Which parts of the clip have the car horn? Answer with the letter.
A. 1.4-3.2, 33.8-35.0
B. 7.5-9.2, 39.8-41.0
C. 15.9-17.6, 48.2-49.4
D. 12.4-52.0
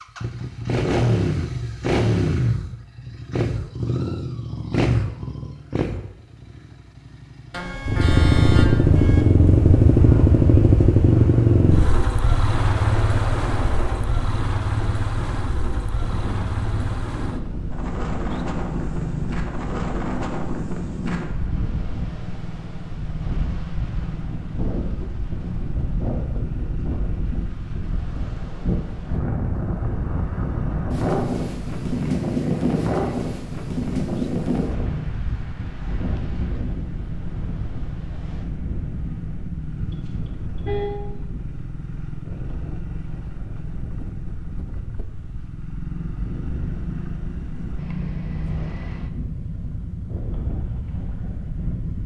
B.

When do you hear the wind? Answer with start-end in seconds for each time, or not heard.
12.4-52.0.